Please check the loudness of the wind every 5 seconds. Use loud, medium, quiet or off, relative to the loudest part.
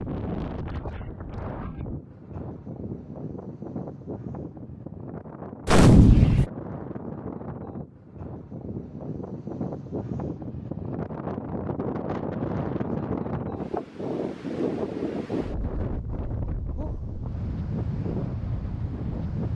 medium, medium, loud, loud.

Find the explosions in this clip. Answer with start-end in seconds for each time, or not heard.
5.7-6.5.